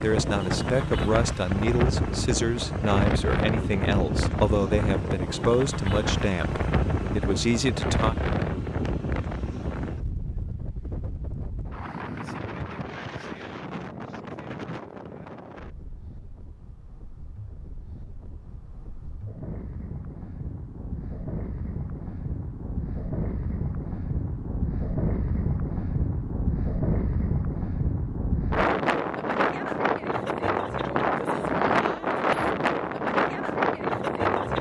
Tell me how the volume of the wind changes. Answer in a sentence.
The loudness of the wind goes down, then up.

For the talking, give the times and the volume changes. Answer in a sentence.
You can hear the talking from 0.0 to 8.2 s, at a steady volume.